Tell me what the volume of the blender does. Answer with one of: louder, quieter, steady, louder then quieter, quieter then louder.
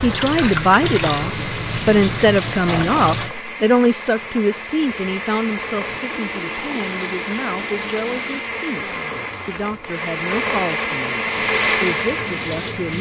louder.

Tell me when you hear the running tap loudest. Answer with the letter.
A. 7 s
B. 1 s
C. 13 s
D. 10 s
B.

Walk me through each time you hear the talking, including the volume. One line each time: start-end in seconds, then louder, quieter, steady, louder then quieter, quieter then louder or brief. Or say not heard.
0.0-12.9 quieter.